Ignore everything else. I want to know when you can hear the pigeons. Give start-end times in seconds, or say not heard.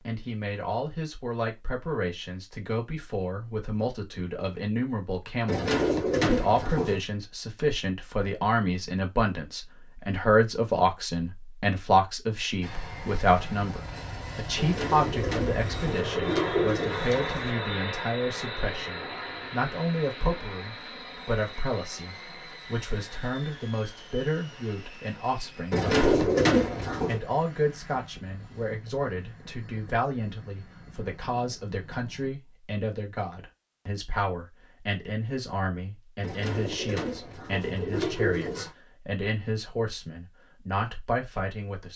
5.5-7.0, 14.6-17.5, 25.7-27.2, 36.2-38.7.